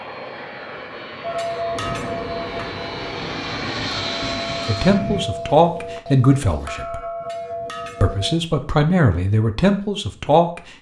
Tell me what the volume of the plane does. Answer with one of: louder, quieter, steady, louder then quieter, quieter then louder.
louder.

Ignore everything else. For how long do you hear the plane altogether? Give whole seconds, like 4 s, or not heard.
5 s.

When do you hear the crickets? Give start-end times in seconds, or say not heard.
not heard.